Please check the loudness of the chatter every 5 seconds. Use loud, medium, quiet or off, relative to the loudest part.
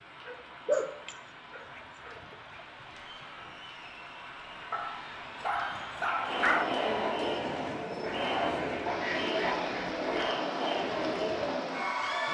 quiet, loud, loud.